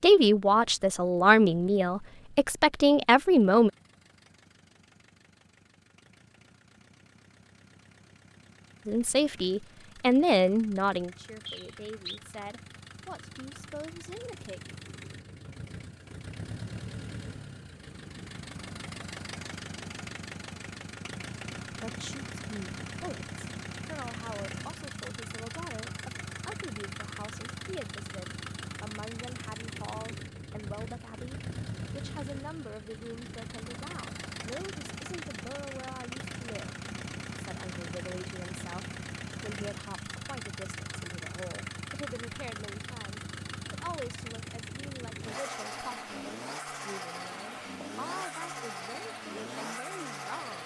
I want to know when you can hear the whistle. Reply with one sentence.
You can hear the whistle from 11.4 to 12.2 s.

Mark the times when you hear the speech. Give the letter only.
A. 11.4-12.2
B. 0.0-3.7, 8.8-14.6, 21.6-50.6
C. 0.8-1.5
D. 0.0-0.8
B.